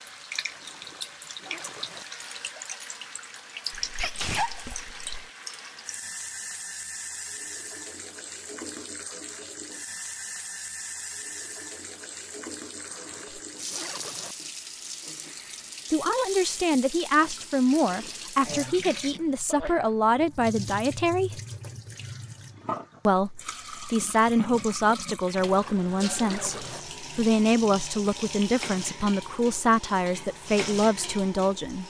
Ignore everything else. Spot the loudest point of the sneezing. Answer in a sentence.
The loudest moment of the sneezing is at 4 seconds.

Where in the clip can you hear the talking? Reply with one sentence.
You can hear the talking from 15.9 to 21.4 s and from 23.1 to 31.8 s.